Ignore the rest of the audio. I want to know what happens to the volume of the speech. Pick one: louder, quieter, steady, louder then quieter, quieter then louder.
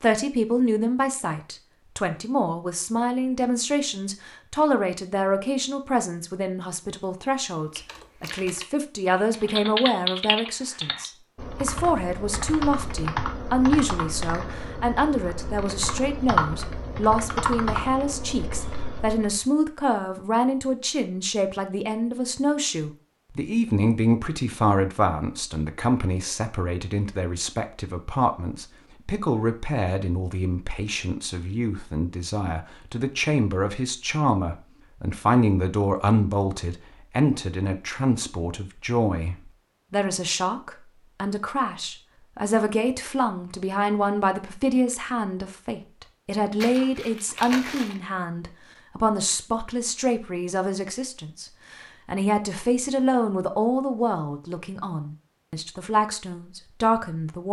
steady.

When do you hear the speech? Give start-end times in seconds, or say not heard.
0.0-57.4.